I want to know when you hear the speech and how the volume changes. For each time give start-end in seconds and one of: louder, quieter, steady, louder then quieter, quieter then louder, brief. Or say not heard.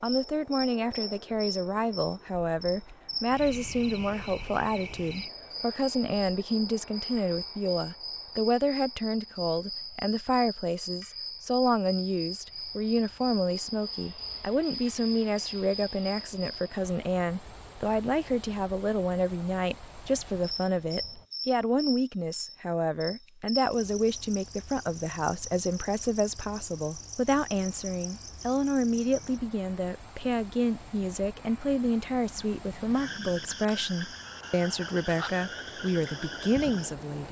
0.0-37.2 steady.